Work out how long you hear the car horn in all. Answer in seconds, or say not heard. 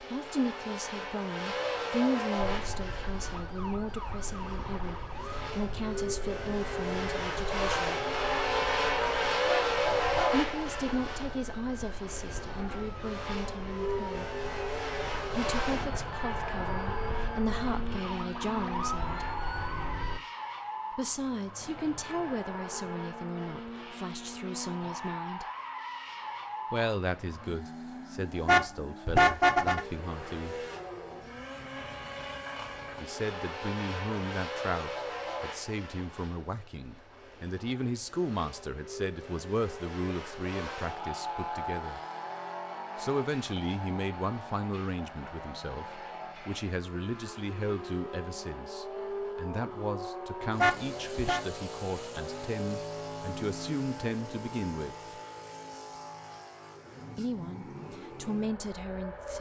3 s.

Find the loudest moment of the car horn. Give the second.
29 s.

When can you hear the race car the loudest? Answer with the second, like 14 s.
10 s.